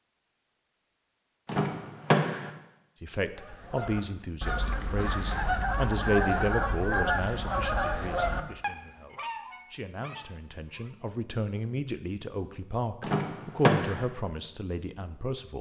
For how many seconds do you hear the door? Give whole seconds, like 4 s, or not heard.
2 s.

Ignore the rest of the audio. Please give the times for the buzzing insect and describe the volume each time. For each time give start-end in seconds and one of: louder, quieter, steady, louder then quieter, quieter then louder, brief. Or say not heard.
not heard.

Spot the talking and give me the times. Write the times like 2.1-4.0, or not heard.
3.0-15.5.